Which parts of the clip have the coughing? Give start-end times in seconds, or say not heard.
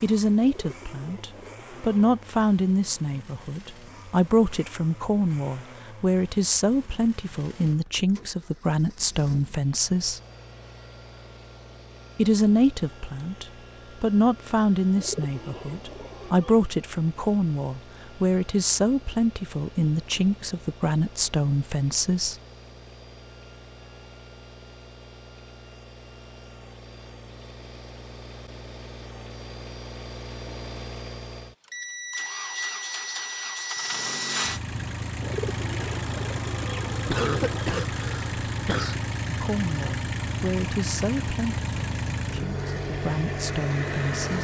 37.0-39.0.